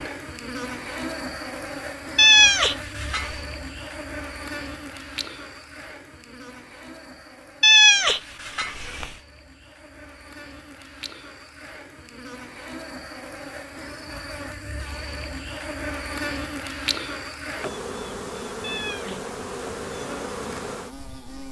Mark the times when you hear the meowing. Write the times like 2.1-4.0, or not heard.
2.1-3.4, 7.6-9.1, 18.6-19.2.